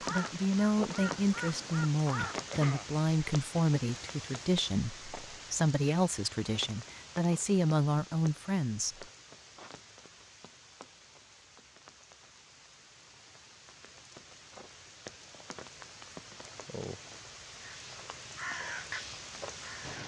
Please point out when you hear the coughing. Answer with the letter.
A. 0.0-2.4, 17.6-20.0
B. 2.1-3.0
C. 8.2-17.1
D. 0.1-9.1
B.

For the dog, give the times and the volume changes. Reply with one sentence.
You can't hear the dog here.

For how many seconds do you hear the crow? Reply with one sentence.
The crow can be heard for 5 seconds in total.